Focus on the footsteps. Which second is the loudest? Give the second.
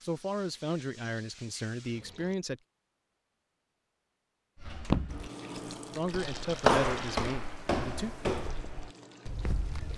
7 s.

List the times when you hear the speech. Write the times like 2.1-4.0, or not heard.
0.0-2.6, 6.0-8.2.